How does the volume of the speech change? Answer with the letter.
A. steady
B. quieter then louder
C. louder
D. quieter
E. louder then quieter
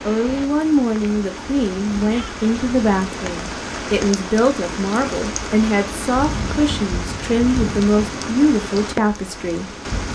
A.